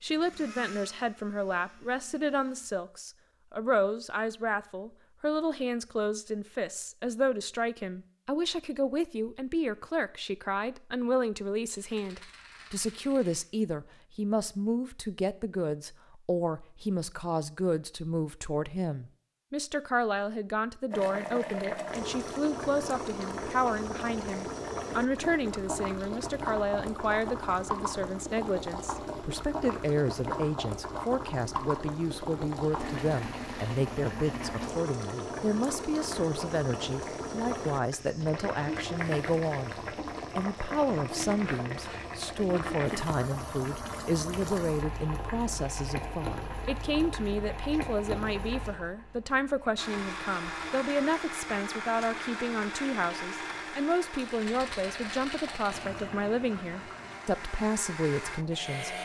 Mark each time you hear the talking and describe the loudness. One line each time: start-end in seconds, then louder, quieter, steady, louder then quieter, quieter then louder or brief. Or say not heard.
0.0-39.8 steady
40.4-59.0 steady.